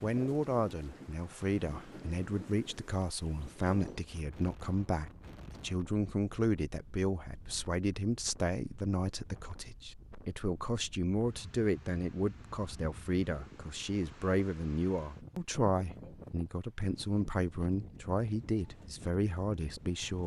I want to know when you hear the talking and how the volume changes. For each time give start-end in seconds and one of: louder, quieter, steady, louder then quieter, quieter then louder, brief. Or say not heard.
0.0-20.2 steady.